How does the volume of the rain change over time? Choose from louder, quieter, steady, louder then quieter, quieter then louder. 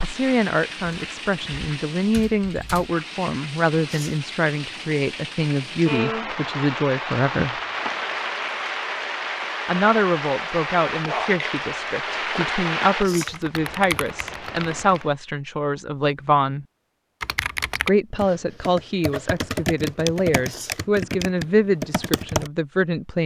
louder.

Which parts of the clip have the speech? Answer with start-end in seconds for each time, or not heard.
0.0-7.5, 9.7-16.6, 17.8-23.2.